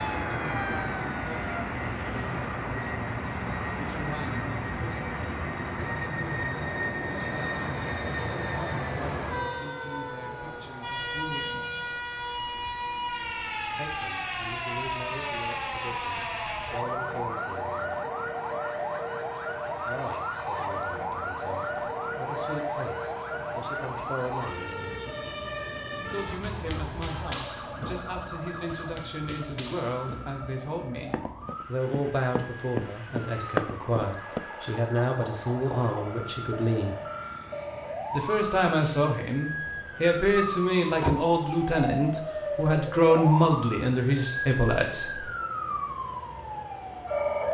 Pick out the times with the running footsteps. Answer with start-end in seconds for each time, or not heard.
26.4-34.4.